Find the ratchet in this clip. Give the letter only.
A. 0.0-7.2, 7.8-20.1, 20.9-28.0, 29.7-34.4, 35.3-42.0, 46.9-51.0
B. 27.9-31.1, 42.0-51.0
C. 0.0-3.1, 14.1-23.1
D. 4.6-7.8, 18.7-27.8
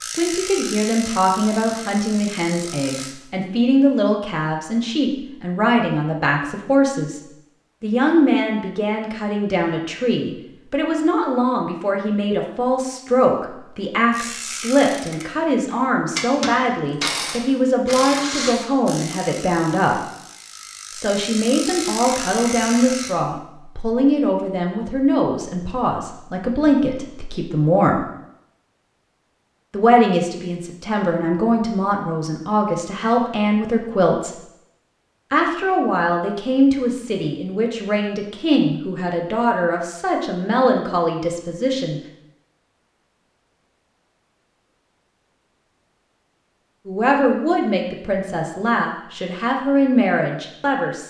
C.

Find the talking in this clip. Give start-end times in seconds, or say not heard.
0.0-7.2, 7.8-20.1, 20.9-28.0, 29.7-34.4, 35.3-42.0, 46.9-51.0.